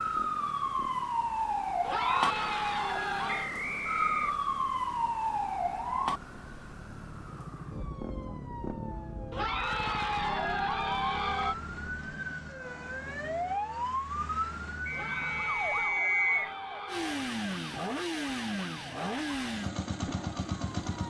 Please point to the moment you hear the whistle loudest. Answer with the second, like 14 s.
16 s.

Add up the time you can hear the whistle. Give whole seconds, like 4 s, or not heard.
3 s.